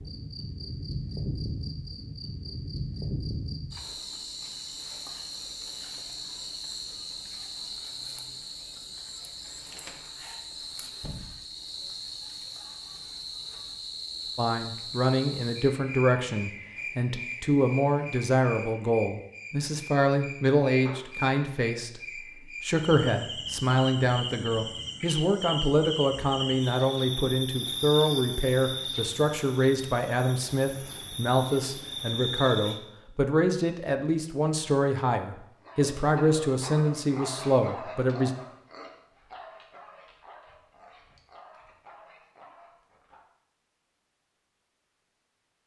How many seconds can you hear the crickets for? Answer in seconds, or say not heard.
33 s.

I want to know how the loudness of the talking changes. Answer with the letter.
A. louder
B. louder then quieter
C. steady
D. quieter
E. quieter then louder
C.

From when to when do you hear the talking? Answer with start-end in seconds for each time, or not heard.
14.3-38.3.